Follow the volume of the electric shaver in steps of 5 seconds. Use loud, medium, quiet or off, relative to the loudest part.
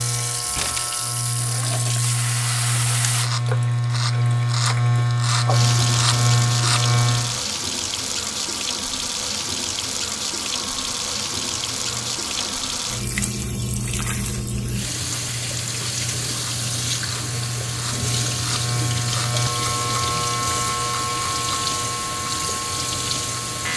loud, loud, quiet, medium, medium.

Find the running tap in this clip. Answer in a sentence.
You can hear the running tap from 0.0 to 23.7 s.